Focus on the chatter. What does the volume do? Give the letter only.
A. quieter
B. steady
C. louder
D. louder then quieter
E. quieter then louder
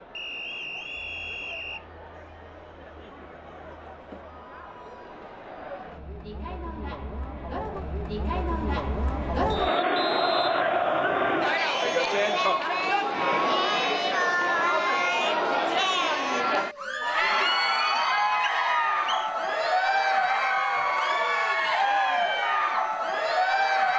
C.